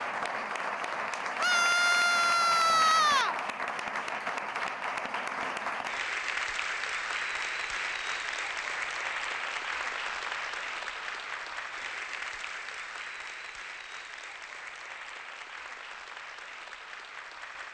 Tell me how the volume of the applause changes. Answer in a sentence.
The loudness of the applause goes down.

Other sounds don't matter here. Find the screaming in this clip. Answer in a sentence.
The screaming can be heard from 1.4 to 3.4 s.